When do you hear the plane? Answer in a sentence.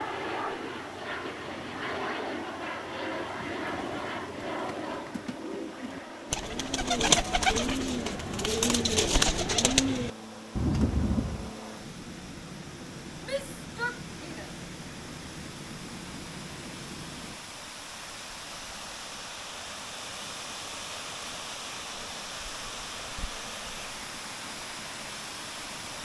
The plane can be heard from 0.0 to 17.4 s.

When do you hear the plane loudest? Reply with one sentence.
The loudest moment of the plane is at 2 seconds.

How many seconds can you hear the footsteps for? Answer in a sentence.
You can't hear the footsteps here.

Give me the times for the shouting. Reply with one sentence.
You can hear the shouting from 13.2 to 14.6 s.